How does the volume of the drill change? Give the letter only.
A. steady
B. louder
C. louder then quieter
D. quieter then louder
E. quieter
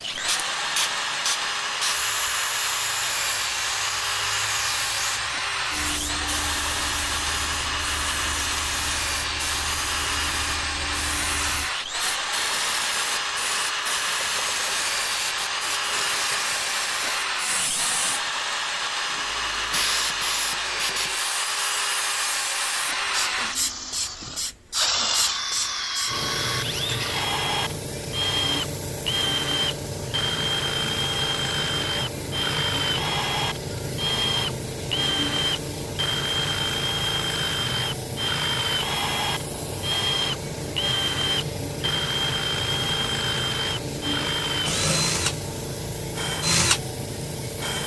A.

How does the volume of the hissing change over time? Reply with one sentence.
The volume of the hissing stays about the same.